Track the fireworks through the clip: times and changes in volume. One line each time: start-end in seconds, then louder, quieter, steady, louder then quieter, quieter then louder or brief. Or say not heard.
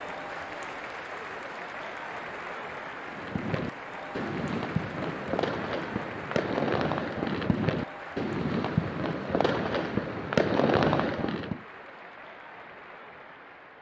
3.0-11.6 louder.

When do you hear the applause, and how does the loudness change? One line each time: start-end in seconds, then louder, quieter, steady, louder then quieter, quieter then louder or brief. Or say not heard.
0.0-13.7 quieter.